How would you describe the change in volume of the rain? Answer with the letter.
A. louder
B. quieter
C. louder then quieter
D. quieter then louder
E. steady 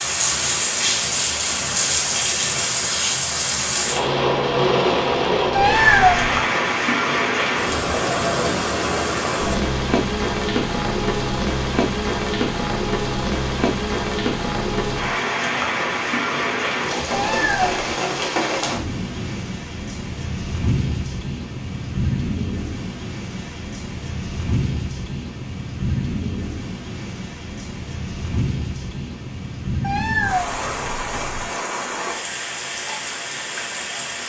B.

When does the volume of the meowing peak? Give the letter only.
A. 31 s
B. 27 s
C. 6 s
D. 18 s
C.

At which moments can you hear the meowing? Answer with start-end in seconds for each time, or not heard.
5.5-6.4, 17.1-17.9, 29.8-31.5.